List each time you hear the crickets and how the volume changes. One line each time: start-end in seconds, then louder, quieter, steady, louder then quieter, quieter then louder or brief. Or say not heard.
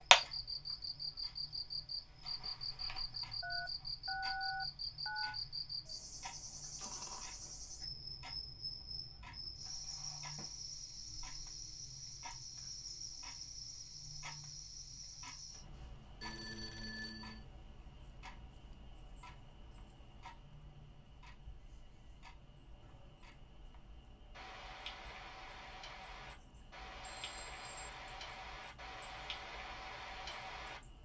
0.0-30.9 quieter.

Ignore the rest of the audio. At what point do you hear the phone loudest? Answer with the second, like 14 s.
4 s.